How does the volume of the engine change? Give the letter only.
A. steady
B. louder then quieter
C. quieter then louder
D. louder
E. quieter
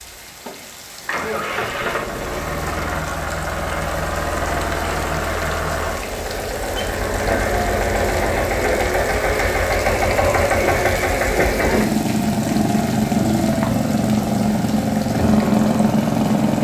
D.